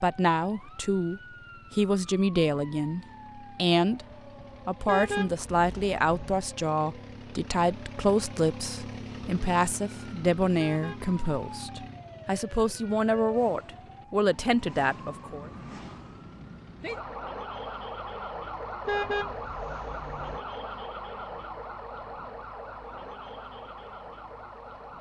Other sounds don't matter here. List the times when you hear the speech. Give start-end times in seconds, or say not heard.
0.0-4.0, 4.7-15.5.